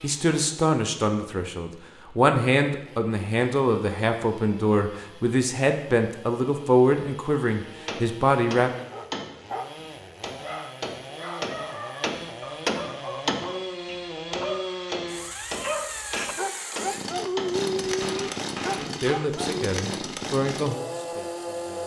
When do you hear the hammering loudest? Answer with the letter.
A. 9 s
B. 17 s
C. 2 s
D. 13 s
D.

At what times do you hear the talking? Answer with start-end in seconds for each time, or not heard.
0.0-8.7, 18.8-21.8.